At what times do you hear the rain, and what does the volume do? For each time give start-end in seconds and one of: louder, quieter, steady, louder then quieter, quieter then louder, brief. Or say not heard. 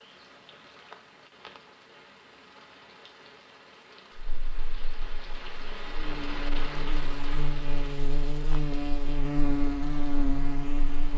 0.0-11.1 louder then quieter.